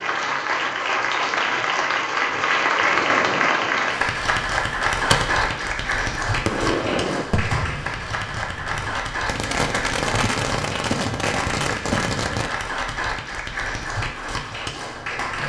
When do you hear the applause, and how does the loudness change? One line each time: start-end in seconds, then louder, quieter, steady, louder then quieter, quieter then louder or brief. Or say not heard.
0.0-15.4 quieter.